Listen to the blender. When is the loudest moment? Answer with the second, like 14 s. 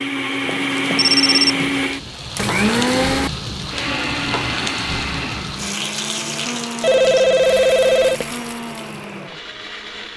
3 s.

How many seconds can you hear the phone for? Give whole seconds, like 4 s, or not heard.
3 s.